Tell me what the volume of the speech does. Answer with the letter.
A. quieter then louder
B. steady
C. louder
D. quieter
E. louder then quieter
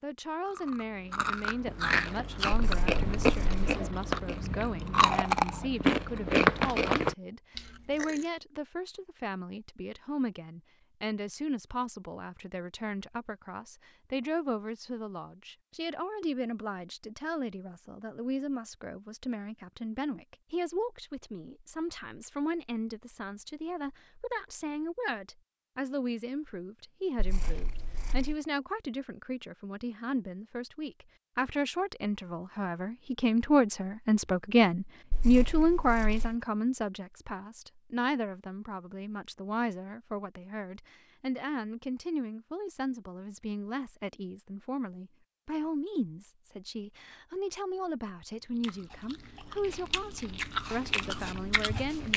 E.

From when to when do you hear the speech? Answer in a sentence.
The speech can be heard from 0.0 to 52.1 s.